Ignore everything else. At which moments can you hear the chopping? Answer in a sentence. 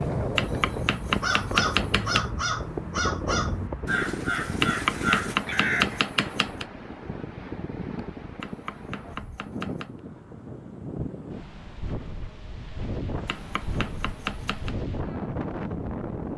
You can hear the chopping from 0.3 to 2.2 s, from 4.6 to 6.7 s, from 8.4 to 10.0 s and from 13.2 to 14.8 s.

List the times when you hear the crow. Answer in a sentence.
You can hear the crow from 0.0 to 6.0 s.